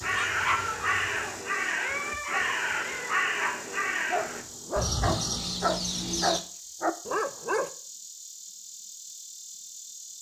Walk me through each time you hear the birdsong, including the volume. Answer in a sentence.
The birdsong can be heard from 0.0 to 6.4 s, at a steady volume.